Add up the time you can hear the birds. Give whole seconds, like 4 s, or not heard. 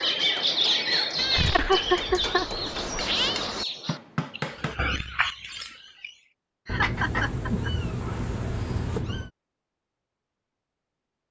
6 s.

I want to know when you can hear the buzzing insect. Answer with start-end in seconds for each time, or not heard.
6.8-9.1.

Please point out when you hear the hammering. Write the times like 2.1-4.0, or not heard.
0.1-4.8.